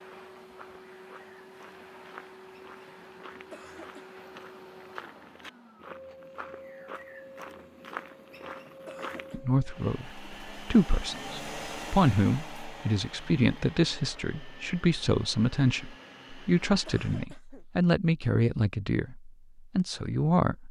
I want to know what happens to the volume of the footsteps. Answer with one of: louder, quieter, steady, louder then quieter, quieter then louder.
louder.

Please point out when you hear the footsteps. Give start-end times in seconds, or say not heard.
0.0-9.4.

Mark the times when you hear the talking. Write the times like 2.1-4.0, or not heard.
9.3-20.6.